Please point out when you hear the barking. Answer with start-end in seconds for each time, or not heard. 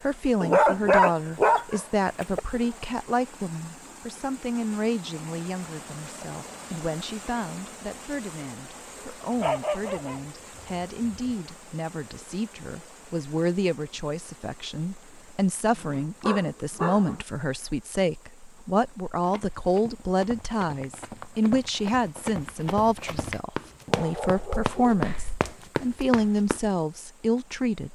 0.4-2.4, 9.3-10.2, 10.8-11.3, 15.7-17.2, 23.9-25.4.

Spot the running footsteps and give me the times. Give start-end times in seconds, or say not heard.
19.2-26.6.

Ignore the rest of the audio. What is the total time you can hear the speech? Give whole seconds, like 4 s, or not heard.
28 s.